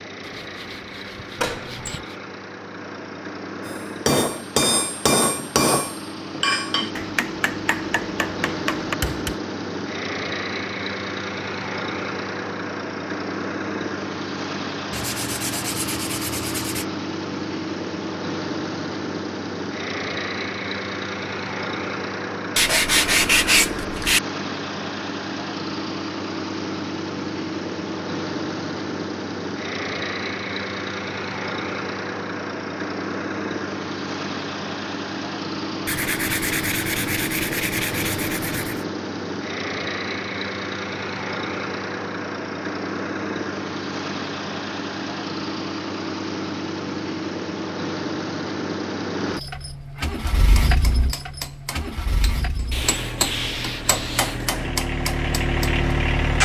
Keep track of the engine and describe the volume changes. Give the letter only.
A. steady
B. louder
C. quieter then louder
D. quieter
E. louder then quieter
A.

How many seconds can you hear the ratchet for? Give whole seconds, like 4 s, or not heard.
not heard.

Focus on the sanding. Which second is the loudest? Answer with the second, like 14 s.
23 s.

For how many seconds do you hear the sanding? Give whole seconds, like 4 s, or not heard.
10 s.